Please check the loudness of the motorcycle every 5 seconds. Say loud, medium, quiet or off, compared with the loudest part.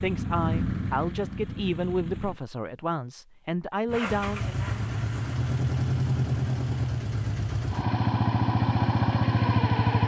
medium, loud.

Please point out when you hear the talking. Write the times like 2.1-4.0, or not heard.
0.0-4.5.